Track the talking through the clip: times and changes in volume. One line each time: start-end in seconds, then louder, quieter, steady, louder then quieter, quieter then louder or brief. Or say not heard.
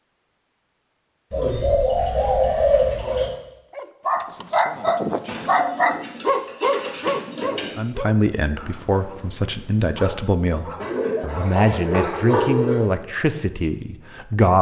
7.8-14.5 steady.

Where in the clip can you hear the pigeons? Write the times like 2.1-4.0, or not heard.
1.3-3.3, 5.2-7.8, 10.8-12.8.